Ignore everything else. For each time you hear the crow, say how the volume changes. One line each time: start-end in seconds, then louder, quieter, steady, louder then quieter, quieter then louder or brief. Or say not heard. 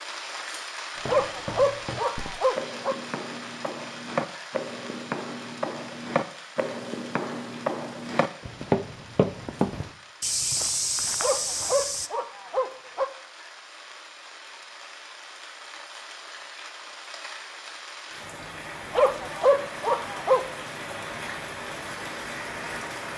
not heard.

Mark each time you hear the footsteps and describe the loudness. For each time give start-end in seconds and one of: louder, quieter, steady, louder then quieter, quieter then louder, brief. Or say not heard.
0.9-12.1 louder.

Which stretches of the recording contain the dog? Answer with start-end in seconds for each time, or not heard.
1.1-3.0, 11.2-13.1, 18.9-20.4.